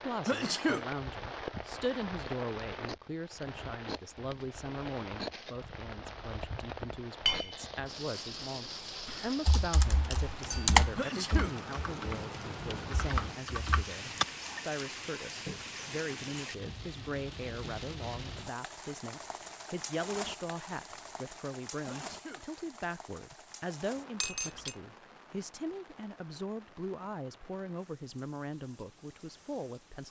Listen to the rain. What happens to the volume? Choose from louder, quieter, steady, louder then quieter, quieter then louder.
quieter.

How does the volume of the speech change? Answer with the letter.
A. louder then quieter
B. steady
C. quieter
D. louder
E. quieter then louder
B.